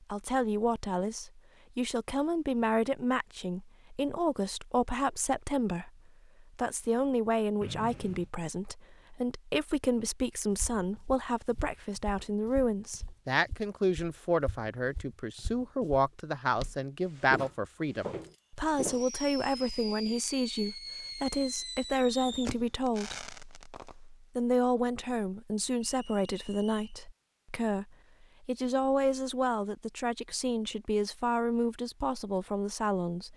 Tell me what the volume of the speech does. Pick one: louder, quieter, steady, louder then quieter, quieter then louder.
steady.